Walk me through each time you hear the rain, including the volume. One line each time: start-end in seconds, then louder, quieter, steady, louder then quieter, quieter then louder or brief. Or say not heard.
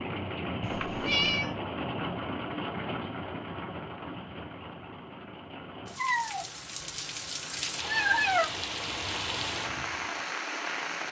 0.0-11.0 quieter then louder.